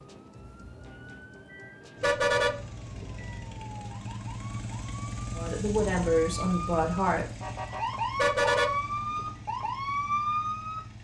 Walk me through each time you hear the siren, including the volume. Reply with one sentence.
You can hear the siren from 0.0 to 10.8 s, getting louder.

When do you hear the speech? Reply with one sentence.
The speech can be heard from 5.3 to 7.2 s.